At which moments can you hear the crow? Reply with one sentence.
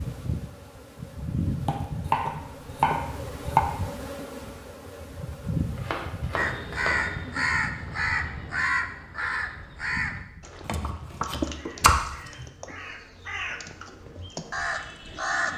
The crow can be heard from 6.3 to 15.5 s.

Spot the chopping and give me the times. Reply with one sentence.
The chopping can be heard from 1.6 to 3.6 s, from 5.8 to 7.1 s and from 10.7 to 12.4 s.